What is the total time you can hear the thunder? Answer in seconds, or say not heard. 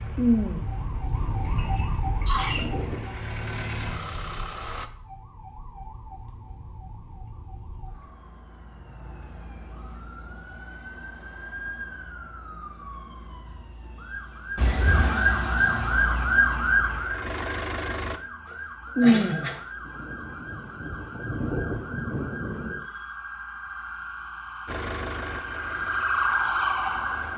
7 s.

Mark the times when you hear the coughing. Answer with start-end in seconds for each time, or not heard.
1.4-2.7, 14.6-15.2, 18.5-19.6.